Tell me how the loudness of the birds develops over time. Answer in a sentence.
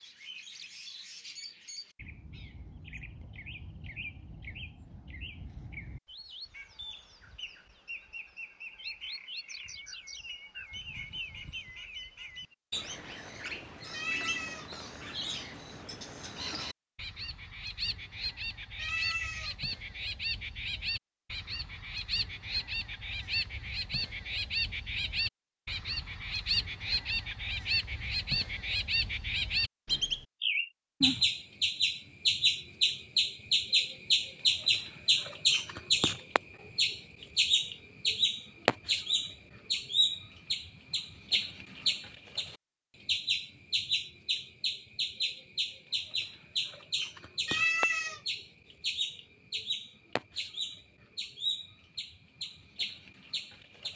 The loudness of the birds goes up, then down.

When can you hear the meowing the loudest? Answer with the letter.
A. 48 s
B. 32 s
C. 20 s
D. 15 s
A.